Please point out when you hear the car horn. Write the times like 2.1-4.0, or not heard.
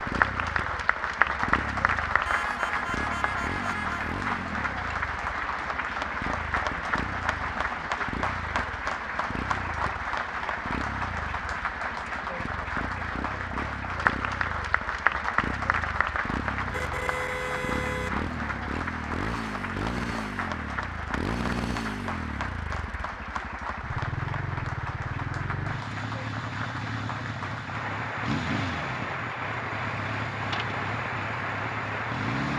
2.2-4.2, 16.6-18.7.